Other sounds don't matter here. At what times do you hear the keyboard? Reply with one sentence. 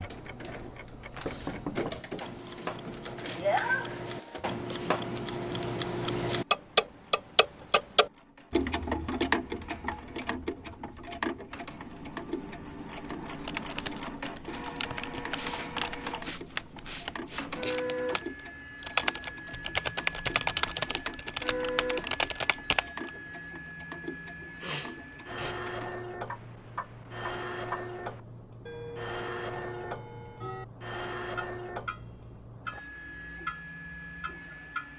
The keyboard can be heard from 13.4 to 23.1 s.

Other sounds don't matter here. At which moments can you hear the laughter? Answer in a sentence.
You can't hear the laughter here.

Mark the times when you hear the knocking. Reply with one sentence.
You can hear the knocking from 1.1 to 2.0 s.